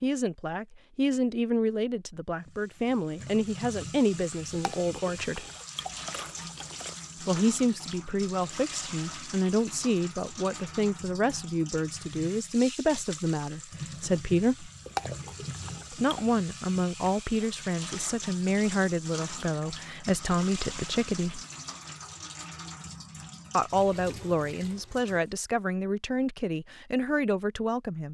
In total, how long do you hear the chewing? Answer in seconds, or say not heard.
4 s.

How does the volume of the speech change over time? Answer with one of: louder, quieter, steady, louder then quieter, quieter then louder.
steady.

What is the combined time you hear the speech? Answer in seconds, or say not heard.
23 s.